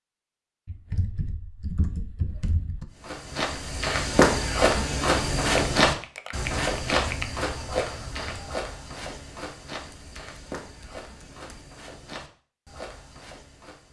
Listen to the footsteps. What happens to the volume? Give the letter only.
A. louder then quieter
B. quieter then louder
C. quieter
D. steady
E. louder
C.